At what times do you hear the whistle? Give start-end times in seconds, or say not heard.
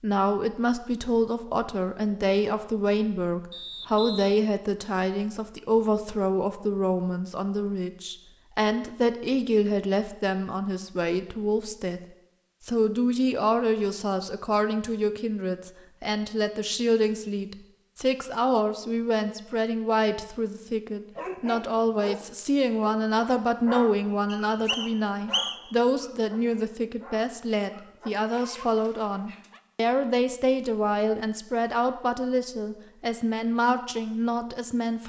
3.5-4.3, 24.3-25.7.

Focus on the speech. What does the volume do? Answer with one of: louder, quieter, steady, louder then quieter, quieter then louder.
steady.